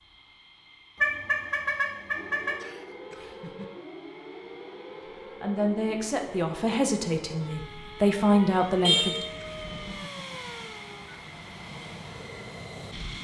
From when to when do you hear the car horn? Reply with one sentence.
The car horn can be heard from 1.0 to 2.5 s and from 8.8 to 9.3 s.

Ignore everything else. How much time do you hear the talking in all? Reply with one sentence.
You can hear the talking for 4 seconds altogether.